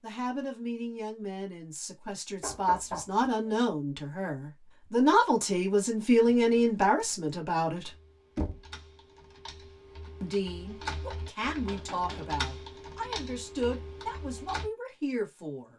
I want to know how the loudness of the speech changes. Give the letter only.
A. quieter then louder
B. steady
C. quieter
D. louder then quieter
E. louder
D.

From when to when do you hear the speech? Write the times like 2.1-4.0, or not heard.
0.0-7.9, 10.2-15.7.